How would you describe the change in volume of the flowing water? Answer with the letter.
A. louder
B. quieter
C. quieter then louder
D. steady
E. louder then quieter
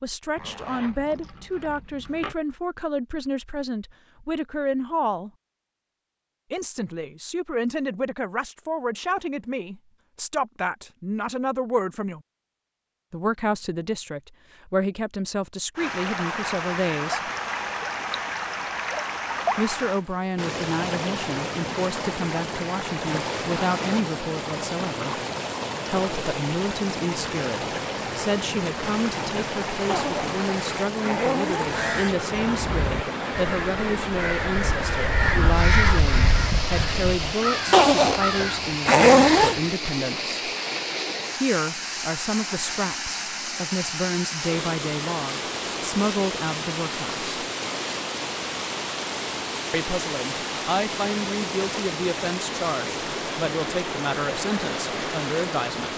D.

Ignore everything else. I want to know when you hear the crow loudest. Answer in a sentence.
The volume of the crow peaks at 36 seconds.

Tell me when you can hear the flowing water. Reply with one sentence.
You can hear the flowing water from 15.8 to 55.9 s.